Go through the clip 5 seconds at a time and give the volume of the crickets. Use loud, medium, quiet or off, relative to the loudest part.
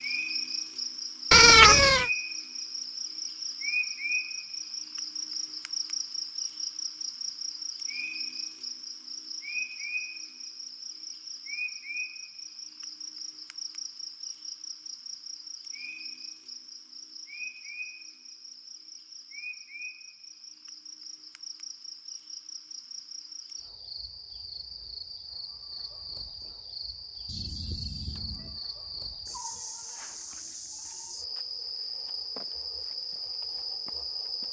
loud, loud, medium, medium, medium, medium, loud.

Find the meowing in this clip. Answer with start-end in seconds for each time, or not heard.
1.3-2.1, 27.2-28.6.